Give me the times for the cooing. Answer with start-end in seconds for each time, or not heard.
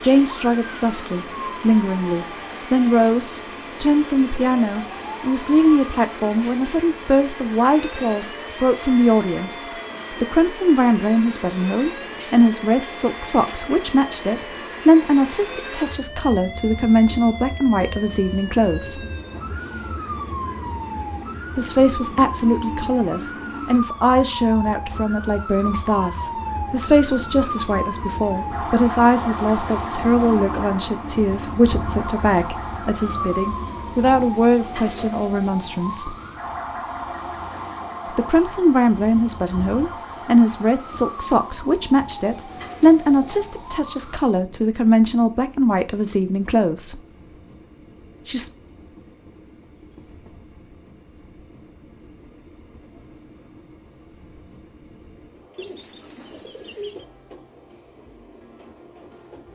55.5-57.0.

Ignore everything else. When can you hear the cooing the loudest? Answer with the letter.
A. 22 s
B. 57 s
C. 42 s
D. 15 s
B.